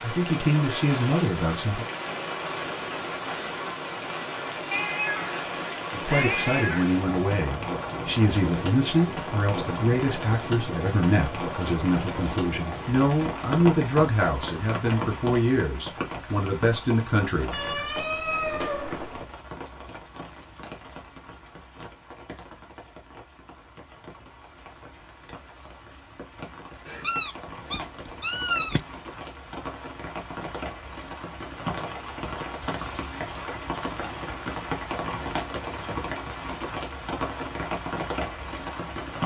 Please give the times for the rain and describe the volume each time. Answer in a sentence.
You can hear the rain from 0.0 to 39.2 s, getting quieter then louder.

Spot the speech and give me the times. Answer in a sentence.
You can hear the speech from 0.0 to 1.9 s and from 5.9 to 17.9 s.